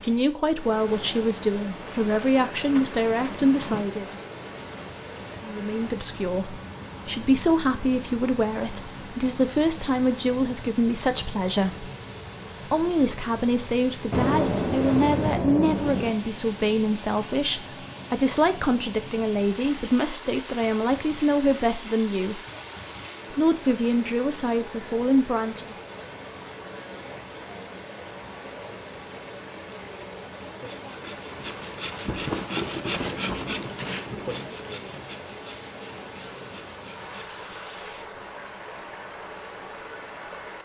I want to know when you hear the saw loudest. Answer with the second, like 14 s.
33 s.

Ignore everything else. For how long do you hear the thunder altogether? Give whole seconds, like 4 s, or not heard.
8 s.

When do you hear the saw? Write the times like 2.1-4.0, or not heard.
30.6-37.3.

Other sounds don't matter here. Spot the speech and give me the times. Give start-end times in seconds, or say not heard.
0.0-4.1, 5.4-11.9, 12.7-22.4, 23.3-25.8.